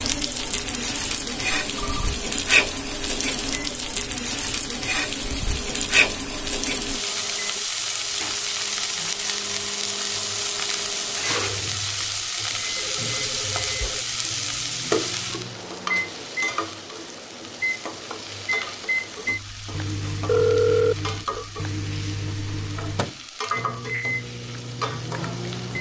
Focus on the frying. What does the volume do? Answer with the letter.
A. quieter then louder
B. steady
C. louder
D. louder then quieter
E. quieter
E.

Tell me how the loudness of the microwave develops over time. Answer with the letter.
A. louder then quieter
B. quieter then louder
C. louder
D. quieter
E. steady
C.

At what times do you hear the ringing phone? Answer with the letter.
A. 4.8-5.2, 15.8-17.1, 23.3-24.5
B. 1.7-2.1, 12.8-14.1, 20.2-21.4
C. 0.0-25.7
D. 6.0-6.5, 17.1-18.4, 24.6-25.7
B.